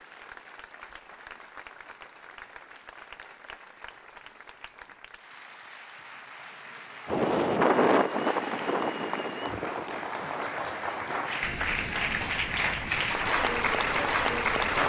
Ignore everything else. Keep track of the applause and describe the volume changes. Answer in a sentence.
The loudness of the applause goes up.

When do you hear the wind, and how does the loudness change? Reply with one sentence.
You can hear the wind from 7.0 to 14.8 s, getting quieter.